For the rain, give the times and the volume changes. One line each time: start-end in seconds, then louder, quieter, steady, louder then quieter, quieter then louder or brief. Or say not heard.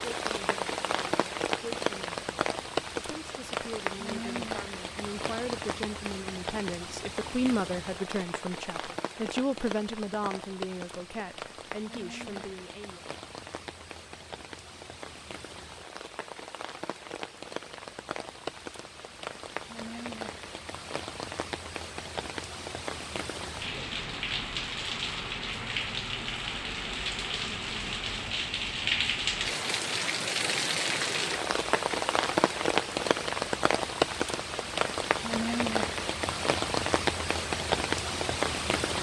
0.0-38.9 quieter then louder.